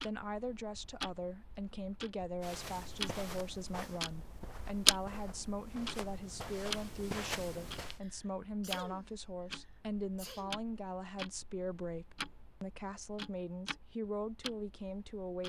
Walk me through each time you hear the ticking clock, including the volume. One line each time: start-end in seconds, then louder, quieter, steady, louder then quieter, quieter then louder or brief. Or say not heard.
0.0-15.4 louder then quieter.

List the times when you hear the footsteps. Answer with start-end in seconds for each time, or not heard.
2.4-8.0.